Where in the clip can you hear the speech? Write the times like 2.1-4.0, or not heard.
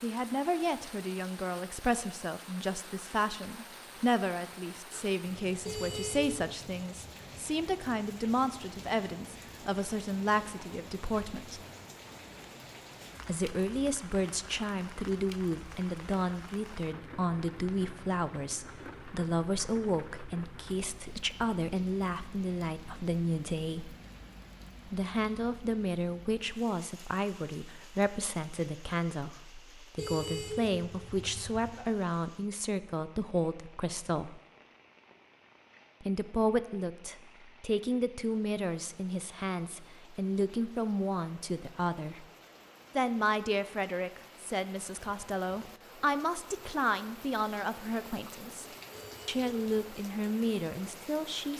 0.0-11.6, 13.2-23.9, 24.9-34.4, 36.0-42.2, 43.0-48.6, 49.2-51.5.